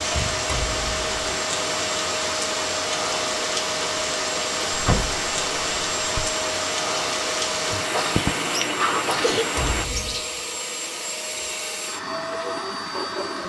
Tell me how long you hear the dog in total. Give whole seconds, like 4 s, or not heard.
not heard.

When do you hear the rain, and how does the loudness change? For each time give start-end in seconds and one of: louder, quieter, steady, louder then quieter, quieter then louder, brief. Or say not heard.
0.0-9.8 steady.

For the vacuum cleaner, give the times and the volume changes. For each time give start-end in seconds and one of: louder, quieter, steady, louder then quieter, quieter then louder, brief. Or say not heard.
0.0-13.4 steady.